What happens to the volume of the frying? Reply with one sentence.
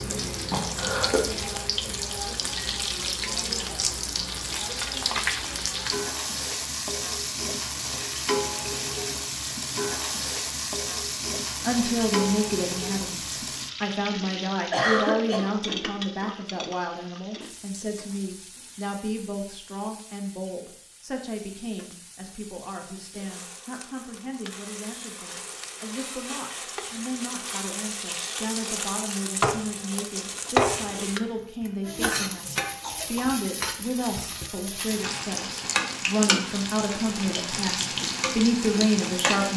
The loudness of the frying goes down, then up.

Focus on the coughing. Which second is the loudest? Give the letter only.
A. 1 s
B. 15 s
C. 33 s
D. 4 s
B.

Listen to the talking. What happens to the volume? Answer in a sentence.
The volume of the talking goes down, then up.